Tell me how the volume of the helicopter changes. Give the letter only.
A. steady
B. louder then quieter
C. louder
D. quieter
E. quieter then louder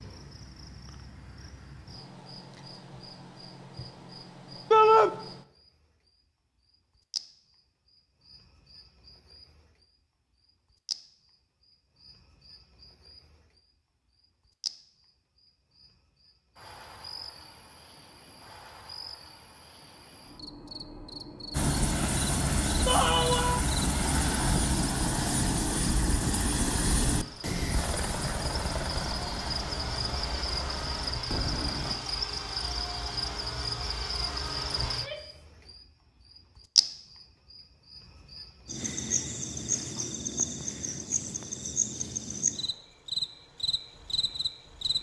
D.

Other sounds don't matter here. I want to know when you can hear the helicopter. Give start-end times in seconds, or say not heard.
21.5-31.9.